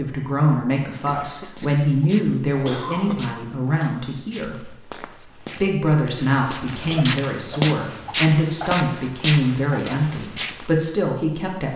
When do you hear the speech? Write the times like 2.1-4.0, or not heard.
0.0-4.8, 5.6-11.7.